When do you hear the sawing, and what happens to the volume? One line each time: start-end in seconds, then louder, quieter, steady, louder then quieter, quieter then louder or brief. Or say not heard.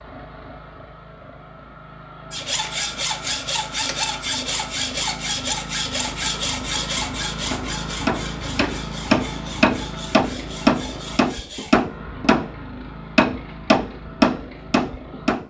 2.3-11.8 quieter.